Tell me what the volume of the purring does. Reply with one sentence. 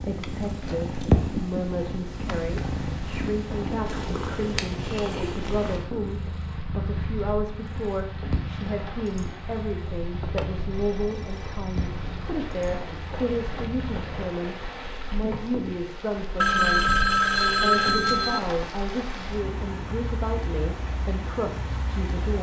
The volume of the purring goes down.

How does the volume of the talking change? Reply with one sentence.
The volume of the talking stays about the same.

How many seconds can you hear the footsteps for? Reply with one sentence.
You can't hear the footsteps here.